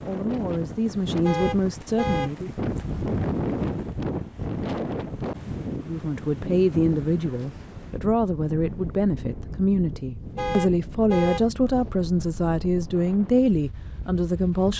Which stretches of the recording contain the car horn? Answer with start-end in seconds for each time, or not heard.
1.2-2.3, 10.3-11.4.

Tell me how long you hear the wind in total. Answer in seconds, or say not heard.
15 s.